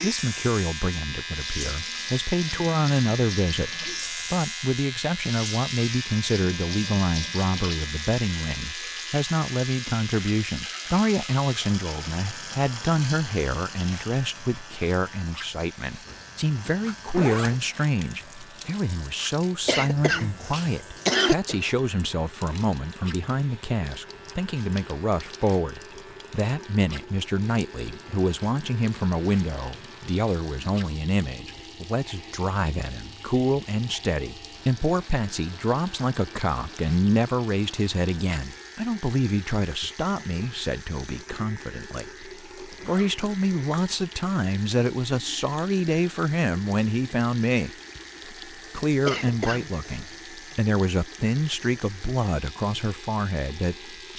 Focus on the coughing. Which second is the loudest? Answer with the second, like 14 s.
21 s.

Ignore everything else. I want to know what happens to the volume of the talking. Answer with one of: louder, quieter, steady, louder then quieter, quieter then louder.
steady.